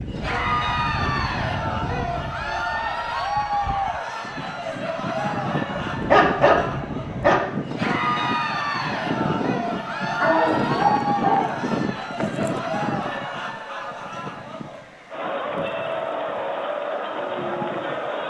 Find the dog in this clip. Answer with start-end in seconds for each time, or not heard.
5.8-7.4, 10.2-11.5.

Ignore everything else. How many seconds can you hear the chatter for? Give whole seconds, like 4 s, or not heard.
18 s.